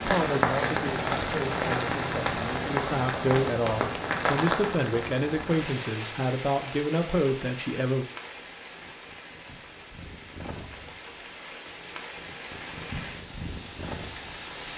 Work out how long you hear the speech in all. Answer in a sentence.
You can hear the speech for 8 seconds altogether.